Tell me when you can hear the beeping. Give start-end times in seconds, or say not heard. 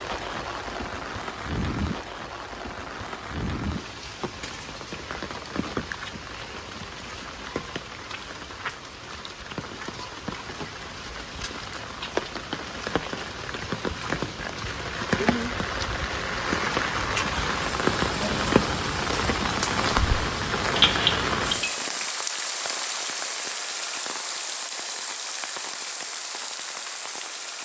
20.8-21.8.